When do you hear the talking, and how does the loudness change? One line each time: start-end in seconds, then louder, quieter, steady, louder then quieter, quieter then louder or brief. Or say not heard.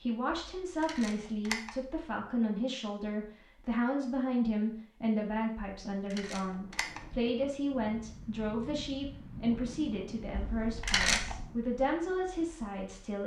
0.0-13.2 steady.